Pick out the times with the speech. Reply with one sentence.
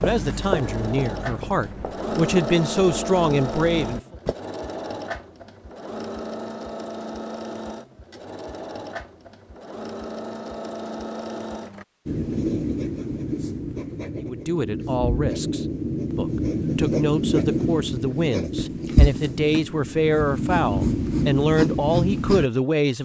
The speech can be heard from 0.0 to 4.2 s and from 14.2 to 23.0 s.